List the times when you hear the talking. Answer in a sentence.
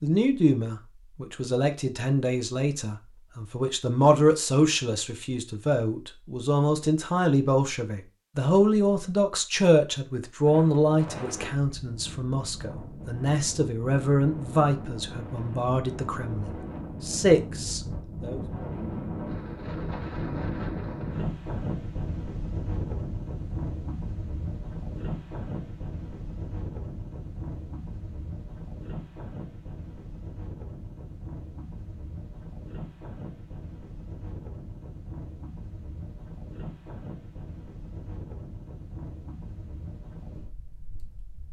You can hear the talking from 0.0 to 18.4 s.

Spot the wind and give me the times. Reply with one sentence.
You can hear the wind from 10.4 to 41.4 s.